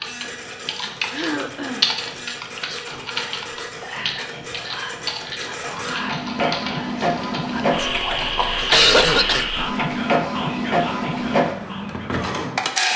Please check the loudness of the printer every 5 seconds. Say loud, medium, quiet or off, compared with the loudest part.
quiet, loud, loud.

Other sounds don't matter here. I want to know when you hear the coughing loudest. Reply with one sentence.
The loudest moment of the coughing is at 9 seconds.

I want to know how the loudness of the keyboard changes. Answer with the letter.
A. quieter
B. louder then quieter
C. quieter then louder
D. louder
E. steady
A.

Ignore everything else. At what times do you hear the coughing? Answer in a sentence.
You can hear the coughing from 1.1 to 1.9 s and from 8.7 to 9.4 s.